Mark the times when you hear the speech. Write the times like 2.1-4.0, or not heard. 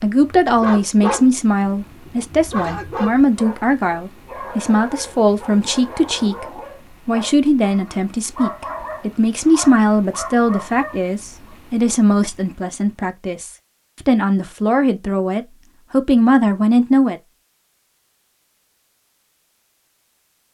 0.0-6.5, 7.0-17.2.